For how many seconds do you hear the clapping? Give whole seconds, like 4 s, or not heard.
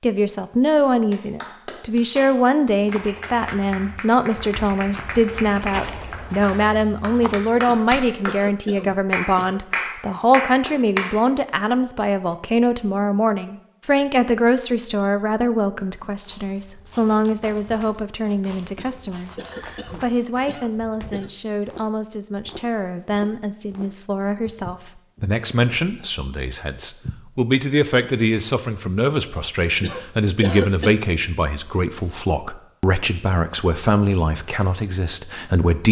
10 s.